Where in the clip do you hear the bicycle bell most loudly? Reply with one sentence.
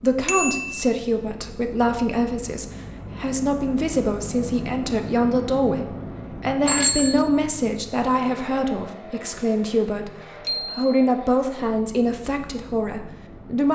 The volume of the bicycle bell peaks at 7 seconds.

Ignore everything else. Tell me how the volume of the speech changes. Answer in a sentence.
The loudness of the speech stays about the same.